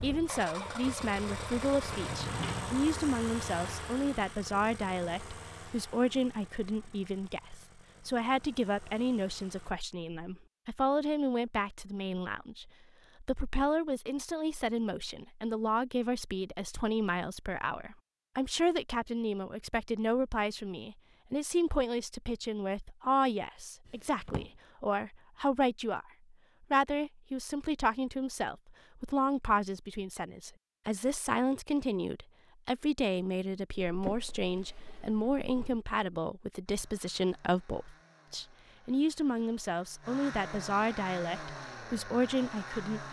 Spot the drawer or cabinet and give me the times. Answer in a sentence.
You can hear the drawer or cabinet from 1.9 to 2.8 s, from 23.9 to 24.6 s and from 33.9 to 35.8 s.